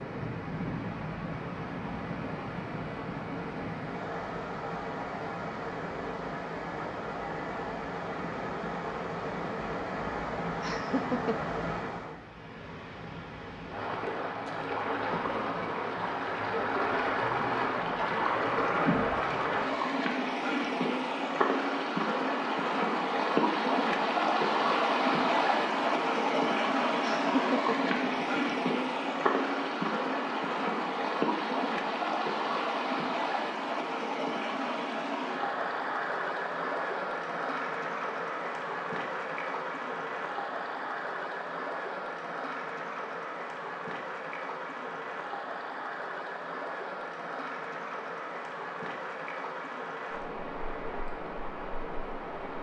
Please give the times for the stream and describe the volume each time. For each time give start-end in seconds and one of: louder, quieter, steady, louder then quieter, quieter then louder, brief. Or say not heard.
0.0-52.5 louder then quieter.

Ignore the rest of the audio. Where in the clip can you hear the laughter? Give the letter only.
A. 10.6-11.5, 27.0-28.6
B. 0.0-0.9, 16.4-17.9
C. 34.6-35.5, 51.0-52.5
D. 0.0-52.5
A.